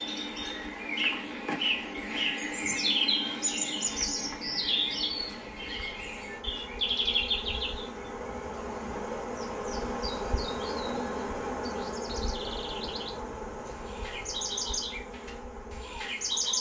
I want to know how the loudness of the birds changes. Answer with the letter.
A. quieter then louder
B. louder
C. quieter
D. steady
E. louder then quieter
A.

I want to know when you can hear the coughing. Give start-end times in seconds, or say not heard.
not heard.